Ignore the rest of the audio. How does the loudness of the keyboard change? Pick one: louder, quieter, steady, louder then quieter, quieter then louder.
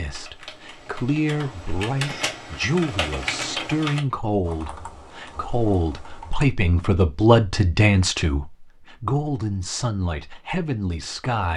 louder then quieter.